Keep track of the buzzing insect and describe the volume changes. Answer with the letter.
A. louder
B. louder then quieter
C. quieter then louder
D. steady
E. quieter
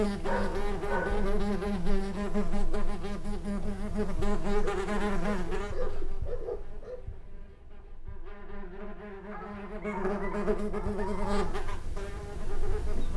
C.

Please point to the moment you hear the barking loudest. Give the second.
1 s.